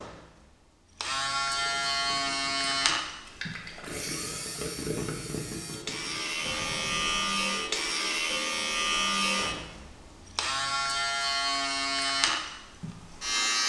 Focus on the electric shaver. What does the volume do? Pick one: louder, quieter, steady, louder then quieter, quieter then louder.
quieter then louder.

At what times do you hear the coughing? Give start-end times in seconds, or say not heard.
not heard.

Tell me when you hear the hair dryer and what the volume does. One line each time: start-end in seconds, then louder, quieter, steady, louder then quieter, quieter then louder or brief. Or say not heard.
not heard.